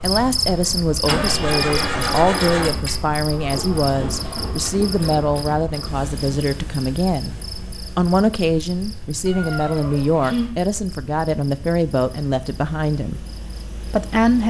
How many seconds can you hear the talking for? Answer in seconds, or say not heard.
14 s.